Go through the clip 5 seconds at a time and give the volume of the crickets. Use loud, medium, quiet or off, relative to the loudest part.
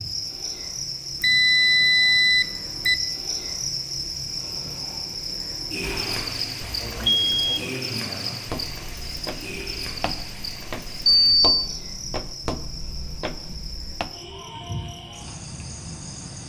loud, loud, medium, medium.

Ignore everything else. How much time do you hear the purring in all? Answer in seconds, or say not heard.
not heard.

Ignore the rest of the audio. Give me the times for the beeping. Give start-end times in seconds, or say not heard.
1.2-3.0, 5.8-7.7, 11.1-11.6.